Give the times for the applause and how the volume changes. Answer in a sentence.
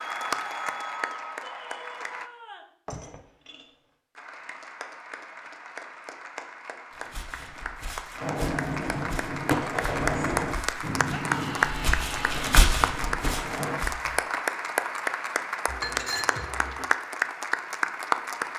You can hear the applause briefly from 0.0 to 2.3 s; and from 4.2 to 18.5 s, getting louder.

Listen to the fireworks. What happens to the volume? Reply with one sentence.
The loudness of the fireworks goes down.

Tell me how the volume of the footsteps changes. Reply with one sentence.
The loudness of the footsteps goes up.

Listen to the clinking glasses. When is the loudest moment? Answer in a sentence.
The loudest moment of the clinking glasses is at 16 seconds.